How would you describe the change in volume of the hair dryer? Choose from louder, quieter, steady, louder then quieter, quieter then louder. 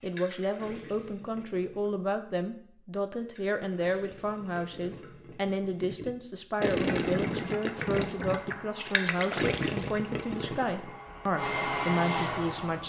louder.